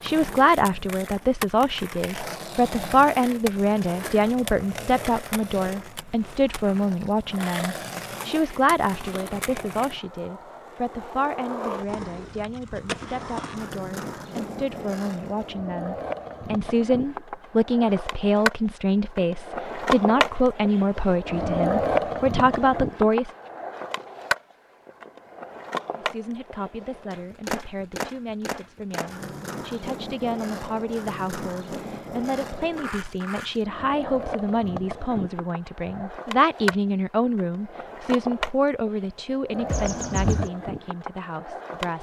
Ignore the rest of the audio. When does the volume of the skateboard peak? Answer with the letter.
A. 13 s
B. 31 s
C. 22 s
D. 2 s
C.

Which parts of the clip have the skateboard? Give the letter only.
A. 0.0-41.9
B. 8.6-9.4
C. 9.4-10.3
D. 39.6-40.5
A.